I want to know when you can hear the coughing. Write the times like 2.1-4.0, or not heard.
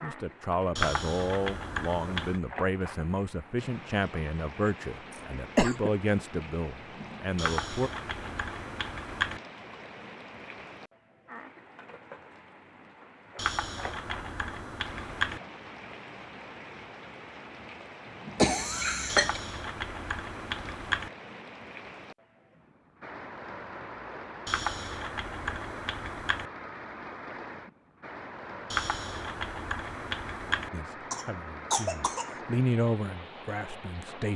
5.1-5.9, 18.4-19.4, 31.1-32.3.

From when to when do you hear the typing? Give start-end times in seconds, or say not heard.
0.8-2.4, 7.3-9.4, 13.3-15.4, 19.1-21.1, 24.4-26.5, 28.7-30.7.